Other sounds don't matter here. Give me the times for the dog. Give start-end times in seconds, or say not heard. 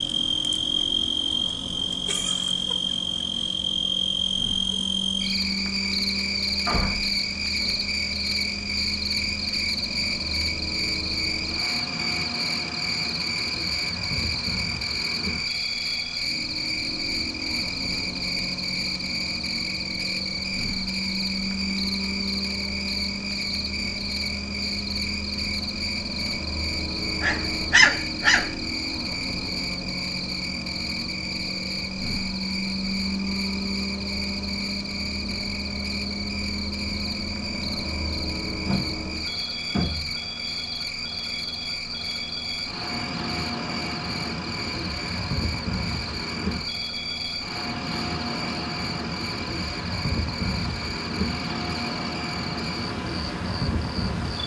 27.2-28.5.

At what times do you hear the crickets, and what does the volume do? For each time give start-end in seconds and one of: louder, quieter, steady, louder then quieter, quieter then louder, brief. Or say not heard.
0.0-54.4 quieter.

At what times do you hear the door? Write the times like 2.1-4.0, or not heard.
6.7-7.7, 38.6-40.1.